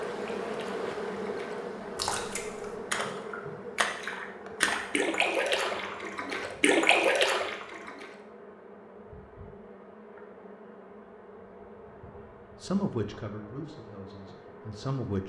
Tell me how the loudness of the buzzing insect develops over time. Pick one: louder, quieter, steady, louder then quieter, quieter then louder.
quieter.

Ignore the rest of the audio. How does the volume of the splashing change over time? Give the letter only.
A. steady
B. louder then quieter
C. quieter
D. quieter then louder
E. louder
E.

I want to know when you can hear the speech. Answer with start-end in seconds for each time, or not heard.
12.6-15.2.